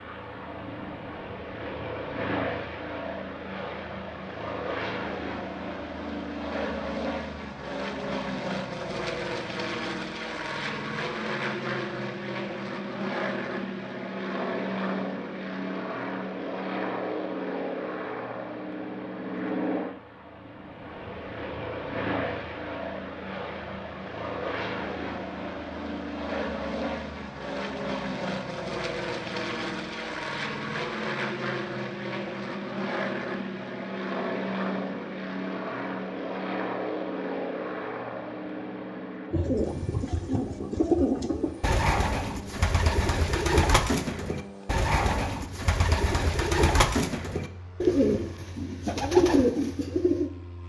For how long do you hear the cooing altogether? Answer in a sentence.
The cooing can be heard for 11 seconds in total.